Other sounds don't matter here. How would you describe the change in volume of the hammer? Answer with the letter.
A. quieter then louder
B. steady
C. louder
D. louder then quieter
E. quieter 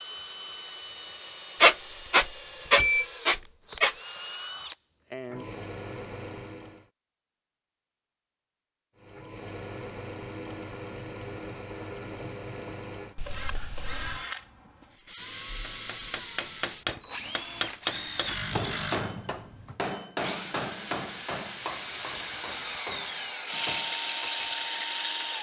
E.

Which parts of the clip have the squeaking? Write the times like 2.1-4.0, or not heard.
1.6-4.0.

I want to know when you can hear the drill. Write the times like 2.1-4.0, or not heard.
0.0-6.9, 8.9-25.3.